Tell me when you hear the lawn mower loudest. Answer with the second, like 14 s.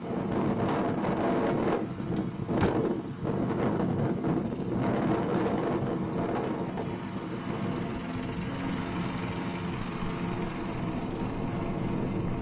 9 s.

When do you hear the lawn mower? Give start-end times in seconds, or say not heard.
0.0-12.3.